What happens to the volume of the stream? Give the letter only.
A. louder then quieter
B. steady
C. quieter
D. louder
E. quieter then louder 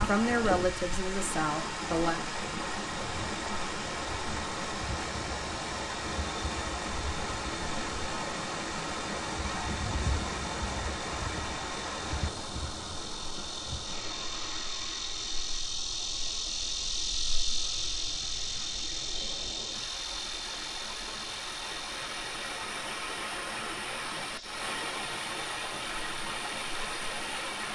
E.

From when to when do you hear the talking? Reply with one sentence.
You can hear the talking from 0.0 to 2.2 s.